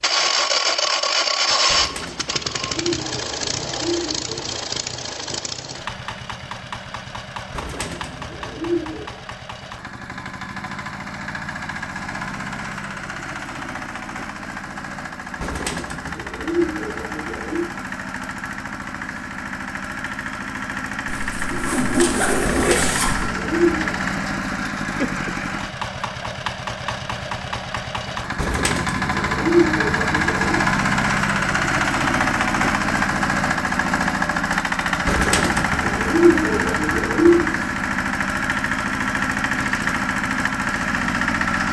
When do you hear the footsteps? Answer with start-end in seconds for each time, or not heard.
not heard.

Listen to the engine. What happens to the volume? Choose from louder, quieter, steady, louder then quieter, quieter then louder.
quieter then louder.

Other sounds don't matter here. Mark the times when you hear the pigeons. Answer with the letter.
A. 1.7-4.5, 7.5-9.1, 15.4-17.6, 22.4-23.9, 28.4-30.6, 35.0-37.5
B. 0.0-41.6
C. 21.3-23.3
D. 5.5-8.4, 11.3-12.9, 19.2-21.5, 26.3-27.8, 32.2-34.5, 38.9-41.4
A.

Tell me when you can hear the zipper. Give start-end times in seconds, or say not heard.
21.3-23.3.